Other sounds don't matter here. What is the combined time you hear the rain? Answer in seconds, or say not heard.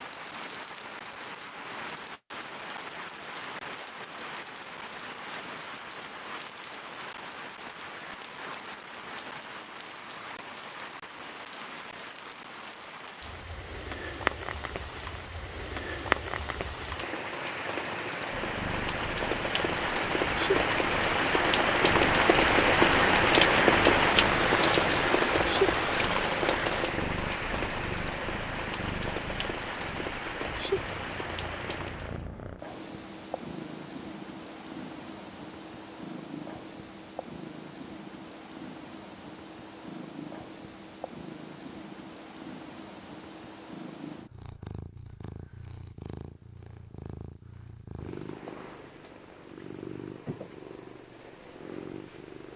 32 s.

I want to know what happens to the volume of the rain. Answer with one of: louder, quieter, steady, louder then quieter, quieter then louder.
louder then quieter.